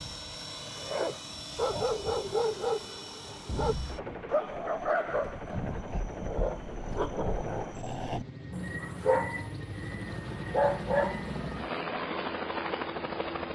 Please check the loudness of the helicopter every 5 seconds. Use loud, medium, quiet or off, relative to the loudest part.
medium, medium, loud.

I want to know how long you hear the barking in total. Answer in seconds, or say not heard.
11 s.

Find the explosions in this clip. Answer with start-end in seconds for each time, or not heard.
3.5-4.3.